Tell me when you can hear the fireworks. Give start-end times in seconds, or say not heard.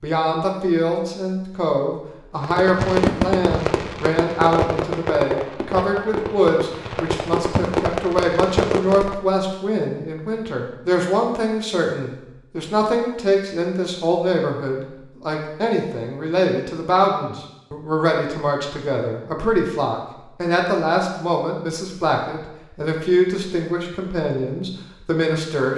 2.4-9.2.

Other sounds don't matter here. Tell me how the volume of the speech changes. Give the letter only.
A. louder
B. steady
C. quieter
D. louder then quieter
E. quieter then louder
B.